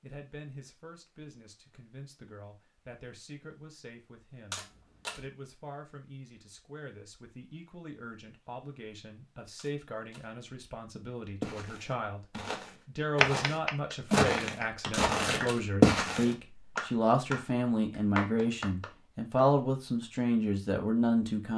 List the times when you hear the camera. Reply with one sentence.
The camera can be heard from 4.5 to 5.3 s, from 9.6 to 10.3 s and from 14.9 to 15.7 s.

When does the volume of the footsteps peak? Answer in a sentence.
The volume of the footsteps peaks at 16 seconds.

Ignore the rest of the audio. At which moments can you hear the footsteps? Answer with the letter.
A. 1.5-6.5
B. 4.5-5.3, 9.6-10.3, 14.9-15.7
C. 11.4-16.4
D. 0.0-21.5
C.